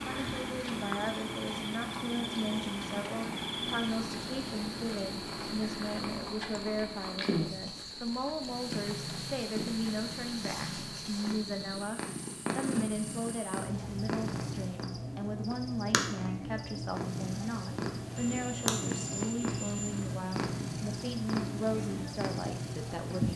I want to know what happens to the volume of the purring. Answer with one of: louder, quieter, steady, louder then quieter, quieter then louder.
steady.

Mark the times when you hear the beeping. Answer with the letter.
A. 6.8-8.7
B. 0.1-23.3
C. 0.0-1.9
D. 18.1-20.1
D.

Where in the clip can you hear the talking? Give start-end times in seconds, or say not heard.
0.1-23.3.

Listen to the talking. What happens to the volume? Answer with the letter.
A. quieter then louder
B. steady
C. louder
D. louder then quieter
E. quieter
B.